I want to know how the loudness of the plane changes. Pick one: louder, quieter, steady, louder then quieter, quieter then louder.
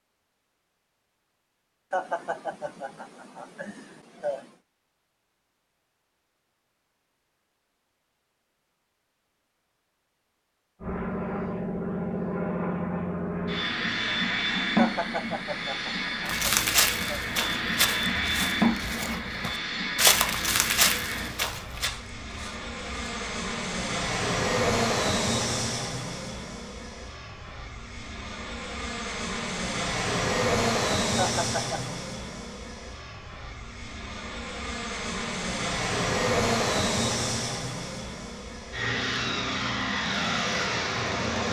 steady.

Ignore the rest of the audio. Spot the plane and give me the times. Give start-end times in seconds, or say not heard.
10.8-41.4.